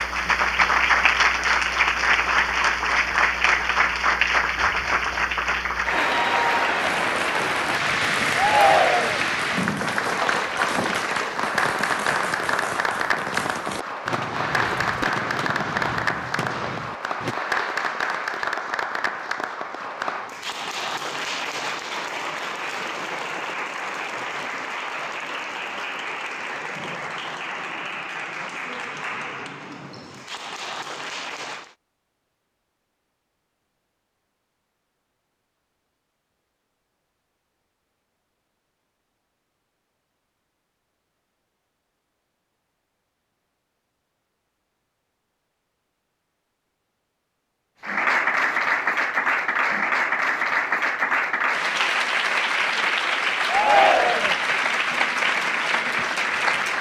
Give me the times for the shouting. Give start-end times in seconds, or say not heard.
8.3-9.2, 53.5-54.4.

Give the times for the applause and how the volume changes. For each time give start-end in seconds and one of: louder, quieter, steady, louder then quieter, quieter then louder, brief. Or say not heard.
0.0-31.8 quieter
47.8-56.7 steady.